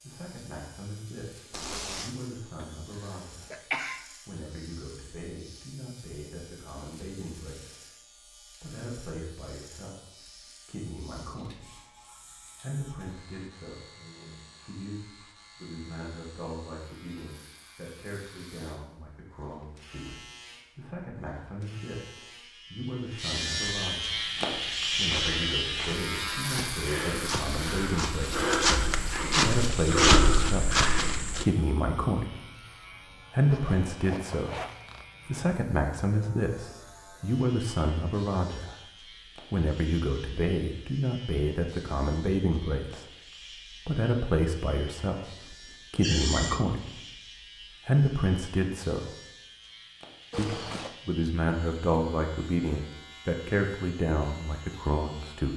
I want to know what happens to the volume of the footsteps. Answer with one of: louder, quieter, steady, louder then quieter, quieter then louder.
louder.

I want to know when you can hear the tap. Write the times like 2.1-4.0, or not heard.
not heard.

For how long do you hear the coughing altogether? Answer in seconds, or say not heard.
2 s.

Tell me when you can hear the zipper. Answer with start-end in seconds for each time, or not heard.
1.5-2.1, 33.5-35.0, 50.3-51.0.